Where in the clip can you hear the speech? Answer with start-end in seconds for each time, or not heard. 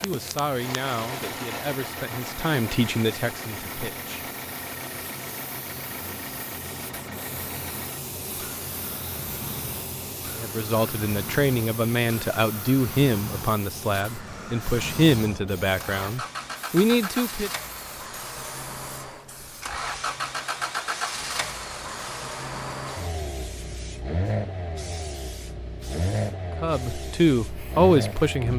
0.0-4.2, 10.4-17.5, 26.6-28.5.